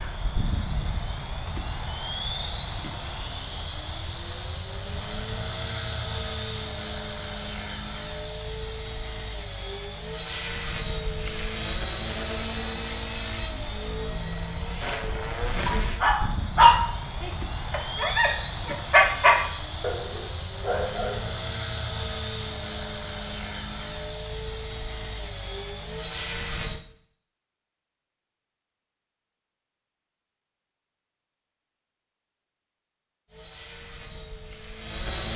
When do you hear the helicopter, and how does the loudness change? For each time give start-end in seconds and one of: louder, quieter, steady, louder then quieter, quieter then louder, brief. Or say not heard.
0.0-26.8 steady
33.2-35.3 brief.